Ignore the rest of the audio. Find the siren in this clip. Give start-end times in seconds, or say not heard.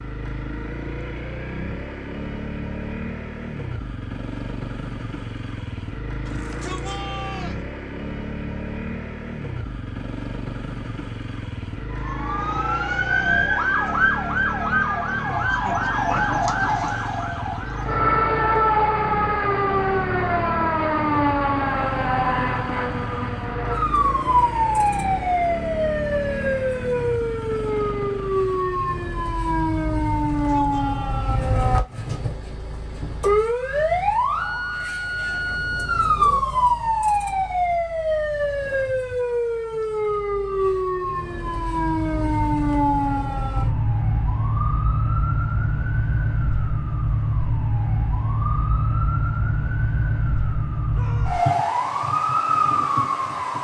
11.9-53.5.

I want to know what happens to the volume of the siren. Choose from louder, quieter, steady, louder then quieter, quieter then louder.
steady.